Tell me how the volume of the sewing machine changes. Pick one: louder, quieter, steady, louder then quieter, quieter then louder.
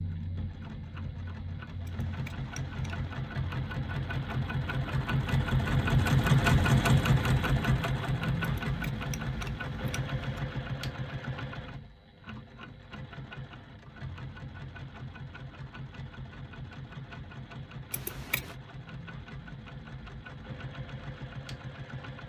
louder then quieter.